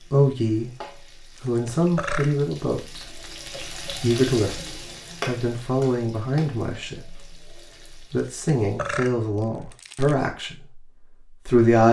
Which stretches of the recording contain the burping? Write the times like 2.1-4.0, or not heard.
1.4-2.4, 8.2-10.2.